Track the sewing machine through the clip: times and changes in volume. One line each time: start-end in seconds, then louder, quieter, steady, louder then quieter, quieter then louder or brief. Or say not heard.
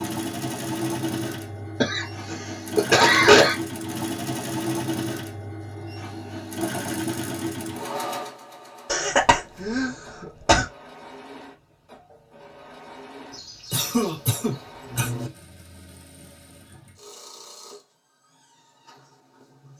0.0-19.7 quieter.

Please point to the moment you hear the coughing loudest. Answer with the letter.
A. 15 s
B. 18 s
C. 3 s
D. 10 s
C.